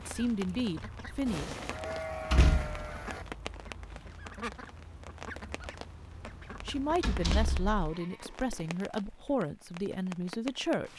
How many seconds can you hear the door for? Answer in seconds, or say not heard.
2 s.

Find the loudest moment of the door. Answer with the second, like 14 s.
2 s.